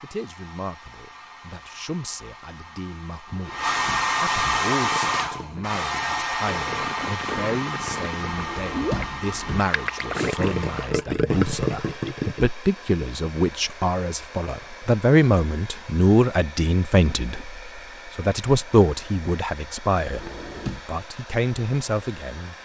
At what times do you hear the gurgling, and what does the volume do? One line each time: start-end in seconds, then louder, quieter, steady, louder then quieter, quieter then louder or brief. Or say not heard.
4.7-12.5 louder.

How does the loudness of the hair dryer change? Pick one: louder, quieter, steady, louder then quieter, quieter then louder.
quieter.